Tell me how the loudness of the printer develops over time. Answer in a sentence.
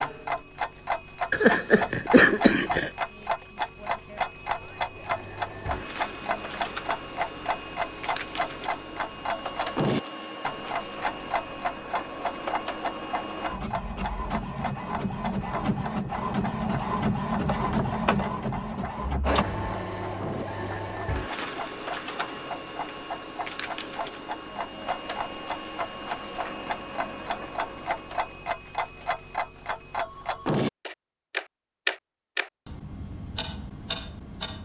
The loudness of the printer goes up, then down.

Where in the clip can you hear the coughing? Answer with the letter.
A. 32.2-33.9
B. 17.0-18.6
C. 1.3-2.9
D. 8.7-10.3
C.